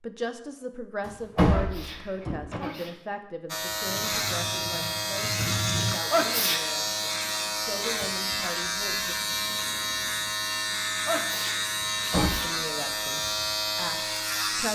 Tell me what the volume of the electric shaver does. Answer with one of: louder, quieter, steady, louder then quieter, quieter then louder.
steady.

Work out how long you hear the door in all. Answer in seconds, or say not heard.
2 s.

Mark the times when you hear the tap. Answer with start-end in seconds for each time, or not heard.
3.9-6.0.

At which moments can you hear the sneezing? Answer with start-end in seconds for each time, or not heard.
1.5-3.0, 6.1-6.8, 11.1-12.5.